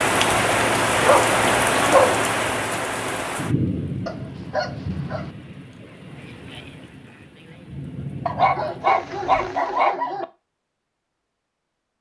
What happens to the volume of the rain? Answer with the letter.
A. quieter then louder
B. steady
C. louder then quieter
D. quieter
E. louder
A.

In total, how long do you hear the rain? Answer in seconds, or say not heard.
10 s.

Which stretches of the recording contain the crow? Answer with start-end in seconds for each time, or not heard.
not heard.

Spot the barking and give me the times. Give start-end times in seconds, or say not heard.
0.9-2.2, 4.0-5.3, 8.2-10.2.